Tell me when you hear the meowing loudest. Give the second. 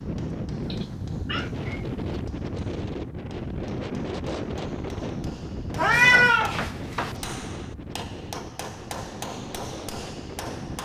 6 s.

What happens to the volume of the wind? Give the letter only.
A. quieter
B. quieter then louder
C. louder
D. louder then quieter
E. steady
A.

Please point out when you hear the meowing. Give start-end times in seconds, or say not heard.
0.7-2.2, 5.8-7.2.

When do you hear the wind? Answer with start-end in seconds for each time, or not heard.
0.0-10.8.